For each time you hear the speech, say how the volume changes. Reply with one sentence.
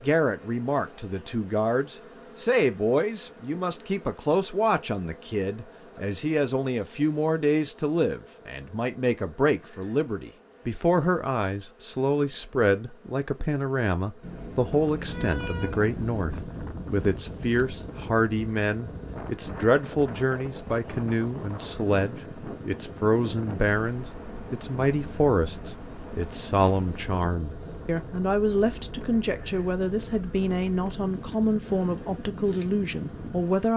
You can hear the speech from 0.0 to 33.7 s, at a steady volume.